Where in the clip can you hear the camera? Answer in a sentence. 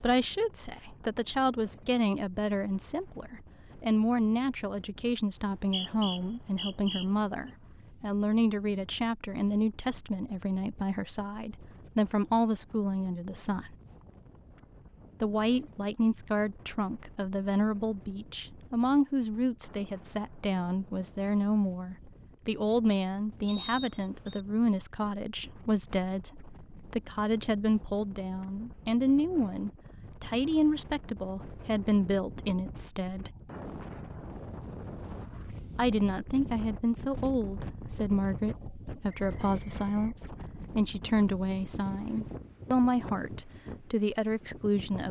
The camera can't be heard in this clip.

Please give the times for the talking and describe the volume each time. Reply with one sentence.
The talking can be heard from 0.0 to 13.7 s, at a steady volume; from 15.2 to 33.3 s, at a steady volume; and from 35.8 to 45.0 s, at a steady volume.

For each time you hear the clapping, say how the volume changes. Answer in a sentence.
You can't hear the clapping here.